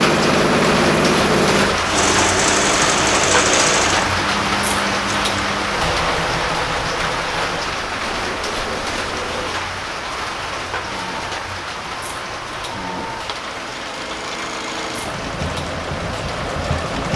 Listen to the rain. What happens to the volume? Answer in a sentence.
The loudness of the rain goes down.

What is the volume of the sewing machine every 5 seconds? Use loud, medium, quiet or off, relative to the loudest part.
loud, medium, quiet, medium.